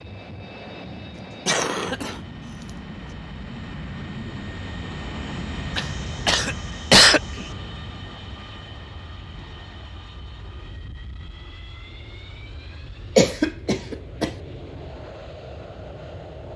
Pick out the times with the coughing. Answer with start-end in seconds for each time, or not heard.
1.4-2.2, 5.8-7.5, 13.2-14.3.